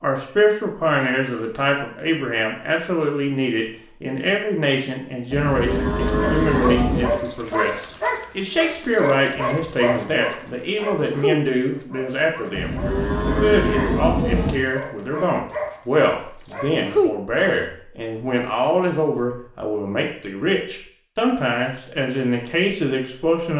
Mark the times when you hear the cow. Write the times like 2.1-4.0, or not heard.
5.3-7.2, 12.6-14.6.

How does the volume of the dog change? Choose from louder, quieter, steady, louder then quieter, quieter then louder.
quieter then louder.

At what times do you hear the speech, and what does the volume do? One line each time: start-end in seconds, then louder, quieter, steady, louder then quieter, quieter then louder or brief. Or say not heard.
0.0-23.5 steady.